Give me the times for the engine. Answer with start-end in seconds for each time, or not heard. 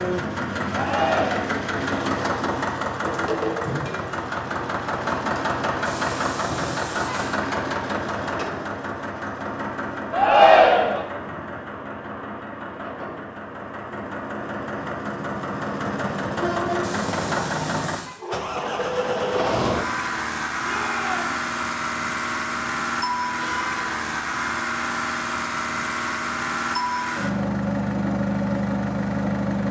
0.0-29.6.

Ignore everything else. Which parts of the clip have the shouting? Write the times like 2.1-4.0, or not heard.
0.7-1.6, 10.1-11.1, 20.6-21.3.